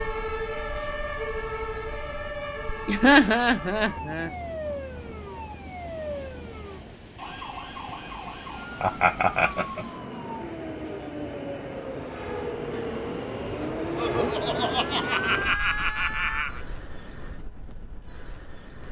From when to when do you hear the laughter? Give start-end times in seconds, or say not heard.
2.9-4.3, 8.8-9.8, 13.9-16.6.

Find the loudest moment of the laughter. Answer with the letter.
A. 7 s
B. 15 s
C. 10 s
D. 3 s
D.